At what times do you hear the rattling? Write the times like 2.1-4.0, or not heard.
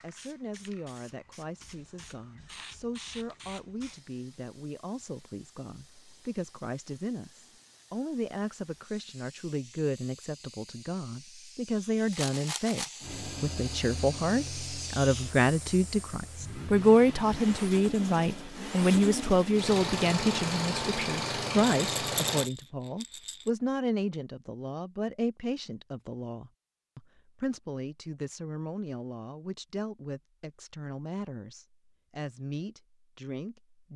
12.1-13.1, 21.6-23.5.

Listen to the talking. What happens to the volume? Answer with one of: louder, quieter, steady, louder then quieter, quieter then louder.
louder then quieter.